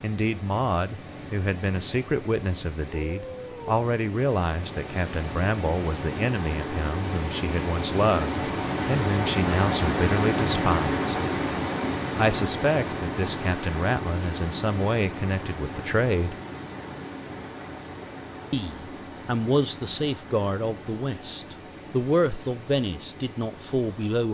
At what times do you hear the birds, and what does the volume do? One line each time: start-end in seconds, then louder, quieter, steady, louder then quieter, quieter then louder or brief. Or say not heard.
not heard.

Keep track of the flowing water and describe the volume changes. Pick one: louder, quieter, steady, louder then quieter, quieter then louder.
louder then quieter.